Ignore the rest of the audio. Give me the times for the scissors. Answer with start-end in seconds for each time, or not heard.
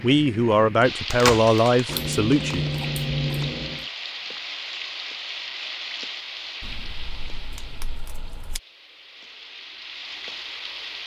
1.9-3.9, 6.6-8.6.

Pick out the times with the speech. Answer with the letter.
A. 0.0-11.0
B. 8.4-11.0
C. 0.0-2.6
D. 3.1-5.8
C.